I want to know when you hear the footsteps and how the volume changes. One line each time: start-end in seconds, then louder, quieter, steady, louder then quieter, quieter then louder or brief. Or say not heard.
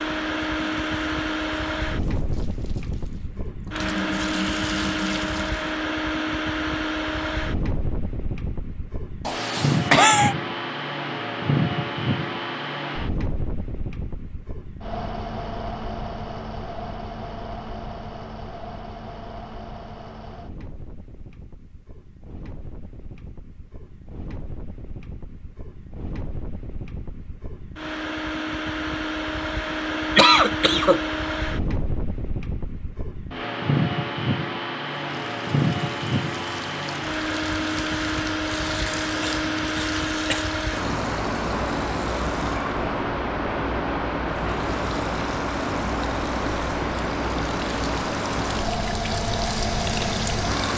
not heard.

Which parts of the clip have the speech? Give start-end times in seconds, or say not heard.
not heard.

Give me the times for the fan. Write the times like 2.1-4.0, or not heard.
0.0-50.7.